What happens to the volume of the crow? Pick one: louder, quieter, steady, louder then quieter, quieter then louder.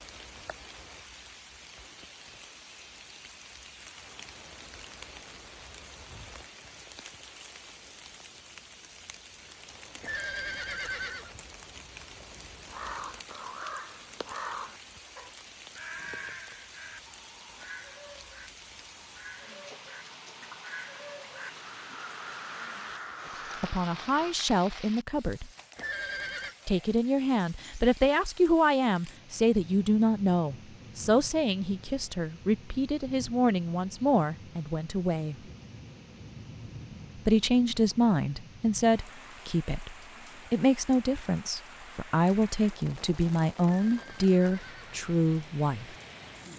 quieter then louder.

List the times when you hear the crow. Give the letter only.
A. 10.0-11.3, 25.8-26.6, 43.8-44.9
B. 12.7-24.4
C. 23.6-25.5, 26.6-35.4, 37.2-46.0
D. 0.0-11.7
B.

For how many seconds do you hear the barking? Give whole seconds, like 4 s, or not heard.
not heard.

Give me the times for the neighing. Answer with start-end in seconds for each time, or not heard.
10.0-11.3, 25.8-26.6, 43.8-44.9.